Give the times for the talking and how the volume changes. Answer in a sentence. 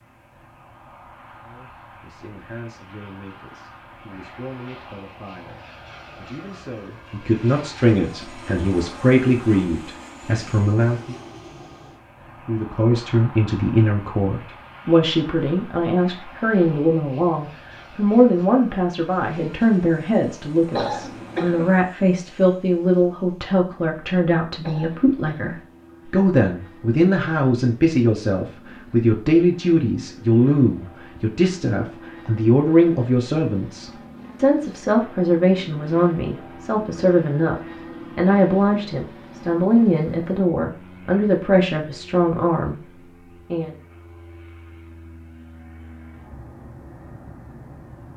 You can hear the talking from 1.4 to 11.2 s, getting louder; and from 12.4 to 43.8 s, at a steady volume.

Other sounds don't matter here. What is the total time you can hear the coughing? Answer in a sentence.
You can hear the coughing for 2 seconds altogether.